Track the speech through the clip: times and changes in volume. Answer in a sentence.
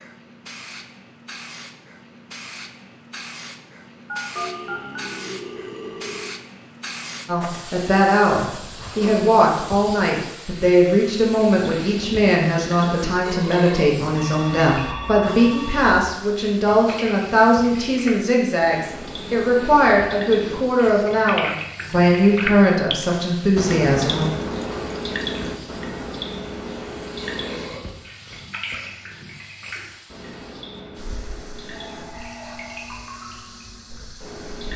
The speech can be heard from 7.2 to 24.2 s, at a steady volume.